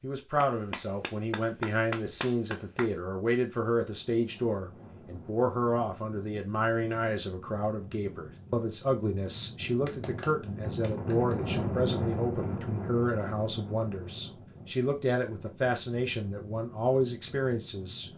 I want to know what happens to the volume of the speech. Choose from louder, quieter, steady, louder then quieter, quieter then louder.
steady.